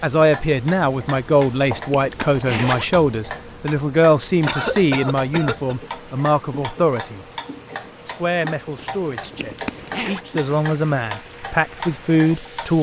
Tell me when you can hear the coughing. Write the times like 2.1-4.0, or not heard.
4.5-5.8.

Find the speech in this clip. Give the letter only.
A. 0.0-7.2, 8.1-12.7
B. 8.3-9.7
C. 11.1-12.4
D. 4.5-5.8
A.